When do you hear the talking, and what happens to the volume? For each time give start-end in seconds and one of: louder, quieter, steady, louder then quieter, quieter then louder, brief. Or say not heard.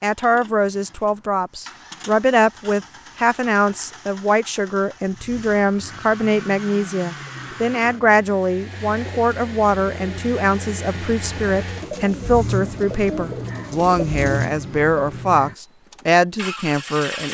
0.0-17.2 steady.